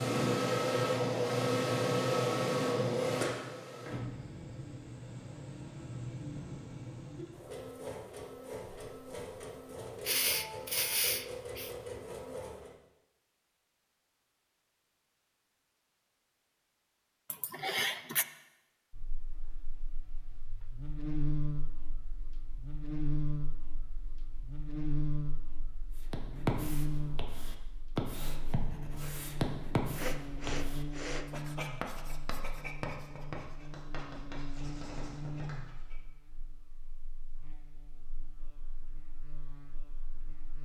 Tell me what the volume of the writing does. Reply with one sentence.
The loudness of the writing goes down.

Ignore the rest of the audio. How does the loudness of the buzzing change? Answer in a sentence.
The volume of the buzzing goes down.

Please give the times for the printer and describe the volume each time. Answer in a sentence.
The printer can be heard from 0.0 to 12.8 s, getting quieter.